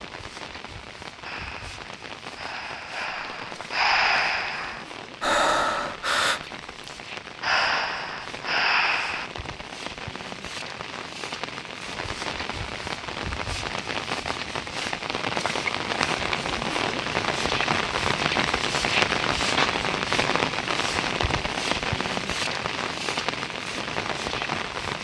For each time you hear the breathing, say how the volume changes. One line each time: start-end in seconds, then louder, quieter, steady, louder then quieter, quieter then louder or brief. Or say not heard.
1.2-9.3 louder.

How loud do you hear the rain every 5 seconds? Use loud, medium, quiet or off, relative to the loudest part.
quiet, quiet, medium, loud, loud.